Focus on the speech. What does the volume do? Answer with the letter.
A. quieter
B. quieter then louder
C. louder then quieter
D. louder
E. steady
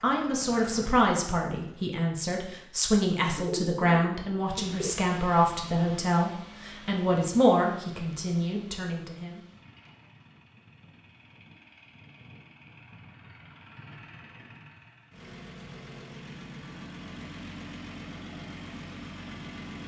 E.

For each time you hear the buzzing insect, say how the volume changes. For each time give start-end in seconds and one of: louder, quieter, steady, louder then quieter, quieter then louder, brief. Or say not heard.
not heard.